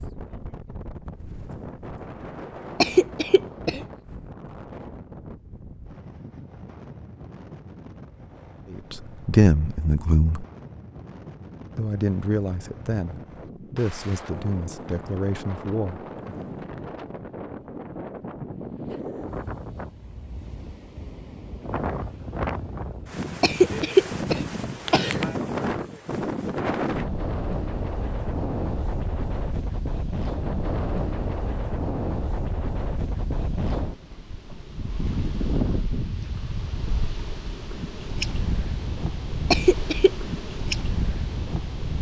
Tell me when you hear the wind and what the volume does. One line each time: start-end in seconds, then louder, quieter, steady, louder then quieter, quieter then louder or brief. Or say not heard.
0.0-41.9 louder.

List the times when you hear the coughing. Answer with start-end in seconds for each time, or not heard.
2.8-3.9, 23.4-25.2, 39.5-40.1.